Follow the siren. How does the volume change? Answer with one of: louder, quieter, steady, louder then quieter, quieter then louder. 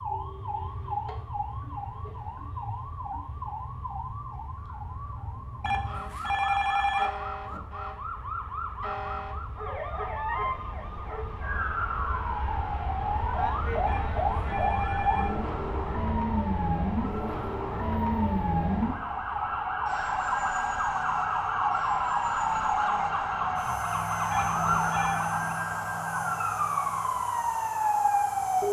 louder.